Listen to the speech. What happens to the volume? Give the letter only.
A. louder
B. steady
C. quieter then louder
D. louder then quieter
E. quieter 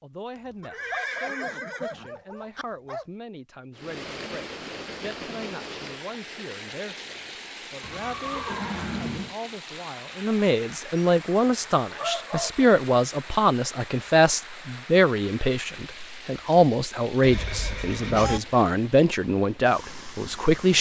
A.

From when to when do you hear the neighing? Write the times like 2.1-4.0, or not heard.
0.6-2.6, 7.8-9.3, 17.2-18.4.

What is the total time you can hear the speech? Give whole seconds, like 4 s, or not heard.
21 s.